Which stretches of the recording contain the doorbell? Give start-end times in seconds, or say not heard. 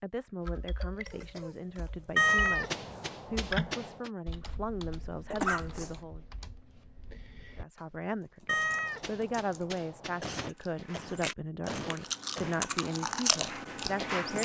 not heard.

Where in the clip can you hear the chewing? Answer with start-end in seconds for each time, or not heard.
10.5-14.4.